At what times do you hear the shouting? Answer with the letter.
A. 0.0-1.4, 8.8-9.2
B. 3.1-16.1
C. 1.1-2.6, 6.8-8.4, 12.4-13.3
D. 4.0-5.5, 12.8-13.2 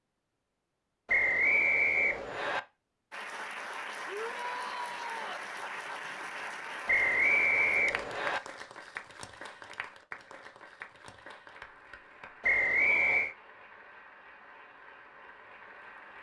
D.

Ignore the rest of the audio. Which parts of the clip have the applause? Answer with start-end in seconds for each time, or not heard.
3.1-16.1.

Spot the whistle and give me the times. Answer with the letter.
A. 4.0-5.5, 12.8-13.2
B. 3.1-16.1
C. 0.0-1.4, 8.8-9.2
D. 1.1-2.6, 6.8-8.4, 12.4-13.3
D.